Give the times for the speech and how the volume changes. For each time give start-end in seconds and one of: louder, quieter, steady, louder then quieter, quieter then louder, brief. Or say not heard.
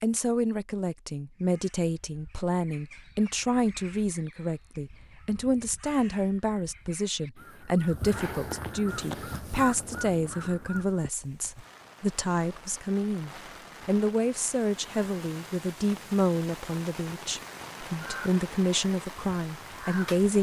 0.0-20.3 steady.